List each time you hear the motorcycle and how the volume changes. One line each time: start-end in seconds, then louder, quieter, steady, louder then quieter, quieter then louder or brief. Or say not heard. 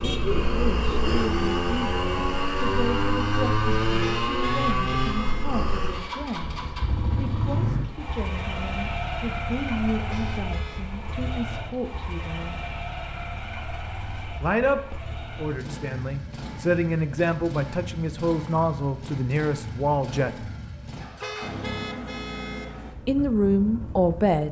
0.0-24.4 quieter.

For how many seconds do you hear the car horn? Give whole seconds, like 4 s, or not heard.
4 s.